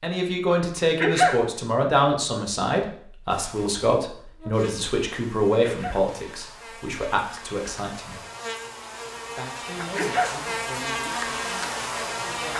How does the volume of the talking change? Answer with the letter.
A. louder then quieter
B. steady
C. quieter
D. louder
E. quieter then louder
C.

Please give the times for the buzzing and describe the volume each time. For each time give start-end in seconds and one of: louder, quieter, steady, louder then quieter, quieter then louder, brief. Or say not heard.
3.3-12.5 louder.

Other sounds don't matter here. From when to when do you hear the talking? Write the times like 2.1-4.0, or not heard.
0.0-8.2, 9.3-12.5.